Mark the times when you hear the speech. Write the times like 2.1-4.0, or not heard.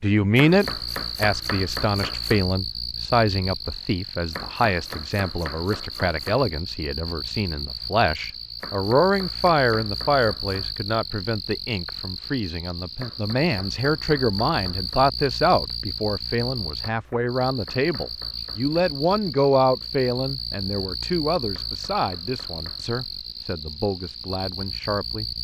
0.0-25.2.